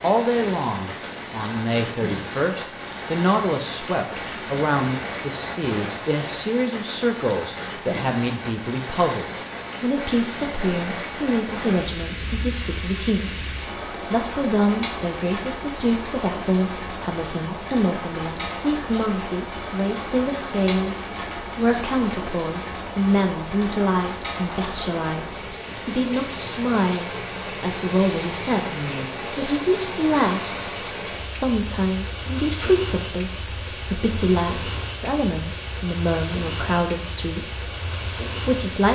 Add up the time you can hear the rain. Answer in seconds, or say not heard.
39 s.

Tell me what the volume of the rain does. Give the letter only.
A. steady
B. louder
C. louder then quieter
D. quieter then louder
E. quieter
A.